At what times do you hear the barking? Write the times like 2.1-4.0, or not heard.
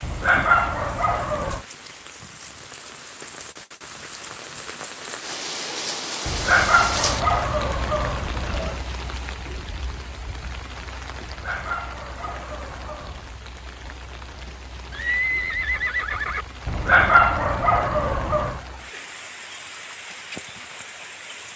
0.0-1.6, 6.2-8.8, 11.2-13.3, 16.6-18.6.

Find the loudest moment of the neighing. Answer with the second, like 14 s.
15 s.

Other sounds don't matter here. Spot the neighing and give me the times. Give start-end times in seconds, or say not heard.
14.9-16.4.